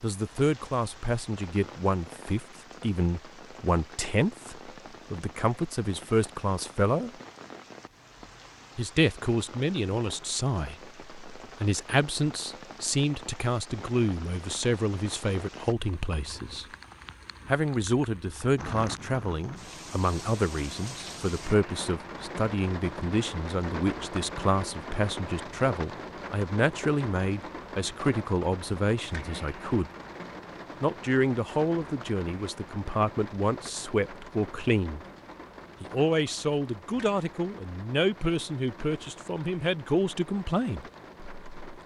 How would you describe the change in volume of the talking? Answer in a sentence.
The volume of the talking stays about the same.